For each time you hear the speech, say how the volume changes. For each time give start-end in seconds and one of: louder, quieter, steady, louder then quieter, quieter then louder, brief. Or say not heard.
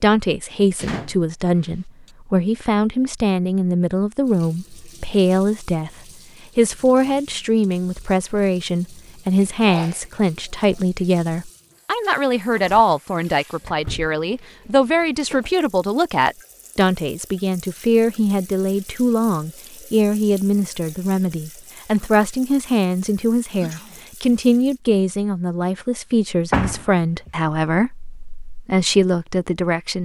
0.0-5.9 steady
6.5-30.0 steady.